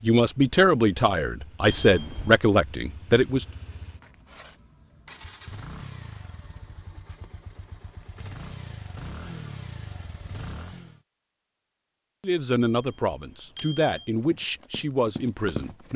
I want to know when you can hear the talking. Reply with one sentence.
You can hear the talking from 0.0 to 3.5 s and from 12.2 to 15.9 s.